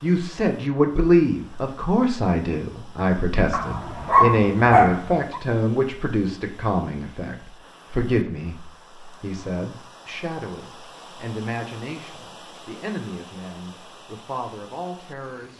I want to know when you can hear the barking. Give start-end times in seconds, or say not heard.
3.5-5.4.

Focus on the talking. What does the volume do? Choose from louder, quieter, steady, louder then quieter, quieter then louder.
quieter.